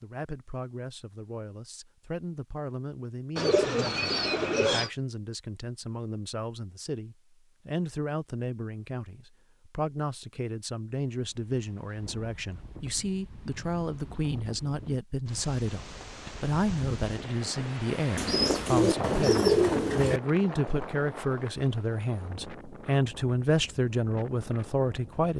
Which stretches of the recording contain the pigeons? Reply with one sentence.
The pigeons can be heard from 3.4 to 4.9 s and from 18.1 to 20.2 s.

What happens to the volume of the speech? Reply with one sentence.
The loudness of the speech goes up.